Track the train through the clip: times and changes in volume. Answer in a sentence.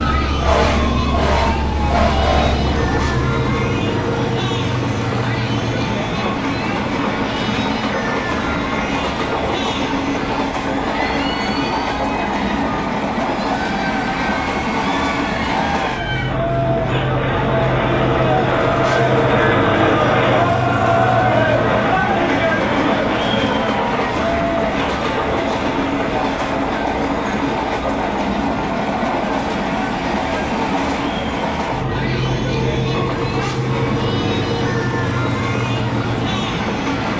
You can hear the train from 2.5 to 37.1 s, at a steady volume.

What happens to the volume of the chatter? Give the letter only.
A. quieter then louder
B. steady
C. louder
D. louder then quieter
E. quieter
D.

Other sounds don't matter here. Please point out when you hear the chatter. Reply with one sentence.
You can hear the chatter from 0.0 to 37.1 s.